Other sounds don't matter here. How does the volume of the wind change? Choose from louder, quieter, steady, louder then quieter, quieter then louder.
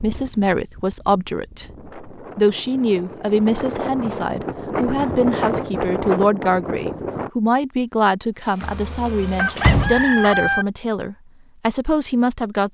louder.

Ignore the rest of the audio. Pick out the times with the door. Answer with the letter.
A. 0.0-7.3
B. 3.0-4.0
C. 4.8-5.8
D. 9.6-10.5
D.